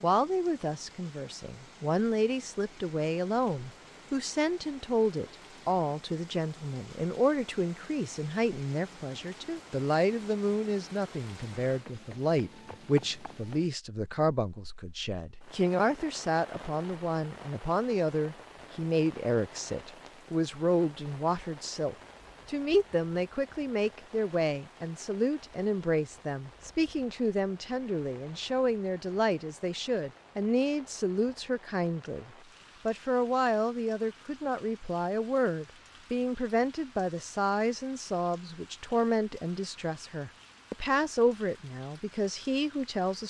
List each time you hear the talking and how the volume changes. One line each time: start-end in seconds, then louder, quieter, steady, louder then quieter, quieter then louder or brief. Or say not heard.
0.0-43.2 steady.